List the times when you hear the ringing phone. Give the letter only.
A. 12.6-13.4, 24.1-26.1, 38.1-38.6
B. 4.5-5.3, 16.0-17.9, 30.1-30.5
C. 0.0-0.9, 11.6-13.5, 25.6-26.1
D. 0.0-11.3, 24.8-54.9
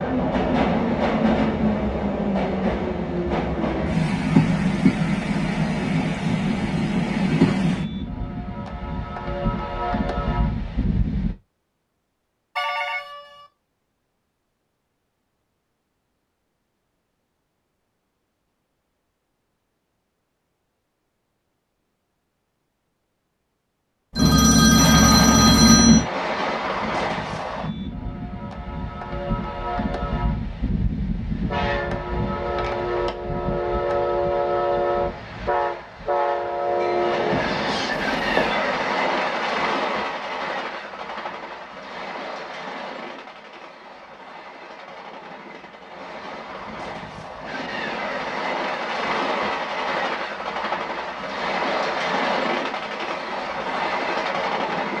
A.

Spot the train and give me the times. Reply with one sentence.
The train can be heard from 0.0 to 11.3 s and from 24.8 to 54.9 s.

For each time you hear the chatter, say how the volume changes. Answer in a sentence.
The chatter can't be heard in this clip.